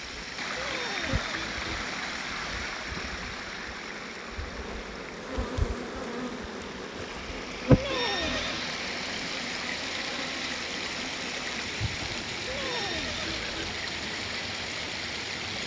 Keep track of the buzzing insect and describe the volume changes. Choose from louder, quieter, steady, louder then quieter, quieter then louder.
louder then quieter.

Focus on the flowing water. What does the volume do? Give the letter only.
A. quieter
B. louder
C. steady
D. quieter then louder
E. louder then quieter
D.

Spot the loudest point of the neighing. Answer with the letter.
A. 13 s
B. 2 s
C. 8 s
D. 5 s
C.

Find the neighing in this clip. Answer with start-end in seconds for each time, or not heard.
0.6-1.9, 7.7-8.7, 12.4-13.8.